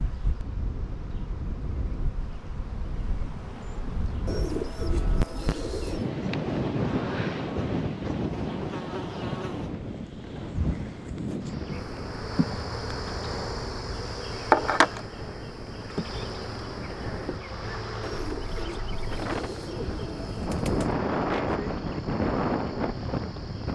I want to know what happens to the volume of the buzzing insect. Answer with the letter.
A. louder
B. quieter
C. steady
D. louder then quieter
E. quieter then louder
D.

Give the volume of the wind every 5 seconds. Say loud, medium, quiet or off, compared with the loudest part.
medium, loud, medium, medium, loud.